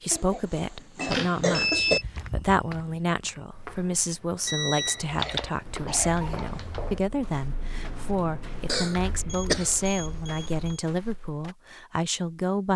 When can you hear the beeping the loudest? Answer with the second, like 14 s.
2 s.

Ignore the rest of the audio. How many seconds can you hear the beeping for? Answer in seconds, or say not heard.
3 s.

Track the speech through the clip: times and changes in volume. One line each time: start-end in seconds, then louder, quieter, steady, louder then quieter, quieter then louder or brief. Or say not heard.
0.0-12.7 steady.